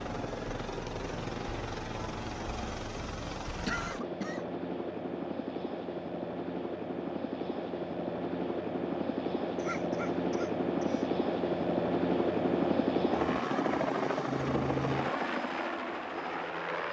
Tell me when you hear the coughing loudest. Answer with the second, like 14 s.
4 s.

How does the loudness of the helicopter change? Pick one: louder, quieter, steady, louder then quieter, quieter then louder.
louder.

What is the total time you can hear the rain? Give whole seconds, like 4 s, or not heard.
not heard.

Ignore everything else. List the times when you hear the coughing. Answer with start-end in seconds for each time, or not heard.
3.6-4.5, 9.6-11.1.